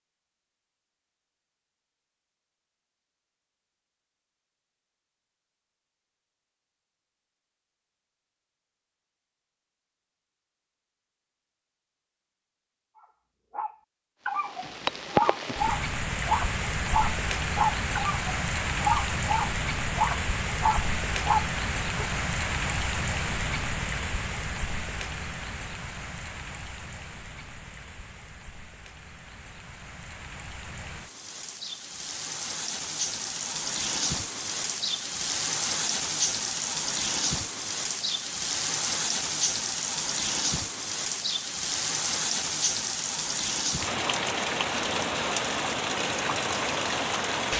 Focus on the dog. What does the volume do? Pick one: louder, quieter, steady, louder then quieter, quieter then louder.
steady.